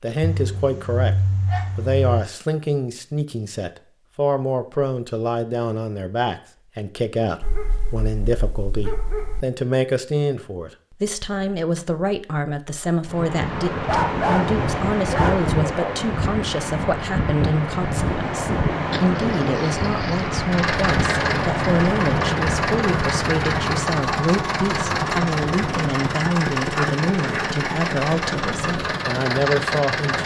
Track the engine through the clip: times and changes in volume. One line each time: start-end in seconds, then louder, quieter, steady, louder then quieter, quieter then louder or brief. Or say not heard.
20.5-30.2 steady.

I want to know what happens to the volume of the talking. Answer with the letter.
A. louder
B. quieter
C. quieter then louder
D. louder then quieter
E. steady
E.